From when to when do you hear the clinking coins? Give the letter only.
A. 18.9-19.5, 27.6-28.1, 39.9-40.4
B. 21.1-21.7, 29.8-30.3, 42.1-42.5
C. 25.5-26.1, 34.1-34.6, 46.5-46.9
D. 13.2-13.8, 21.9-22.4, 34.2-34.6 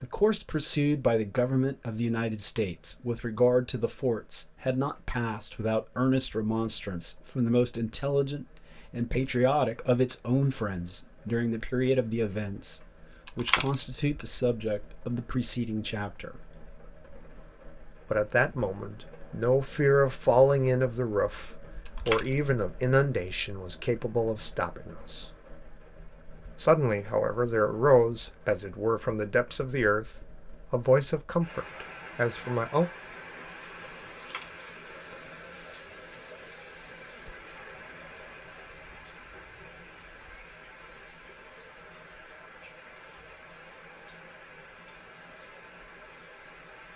D.